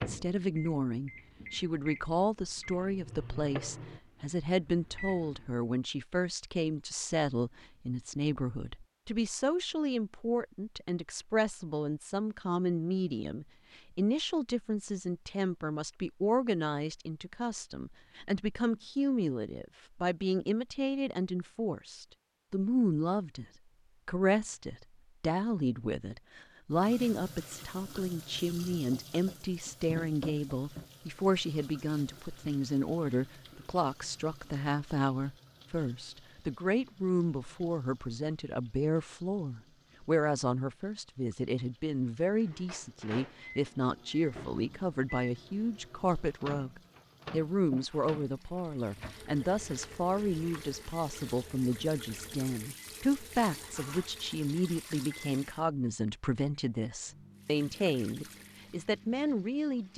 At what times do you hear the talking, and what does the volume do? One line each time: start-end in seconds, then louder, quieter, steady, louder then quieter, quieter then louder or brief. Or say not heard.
0.0-23.4 steady
24.1-59.9 steady.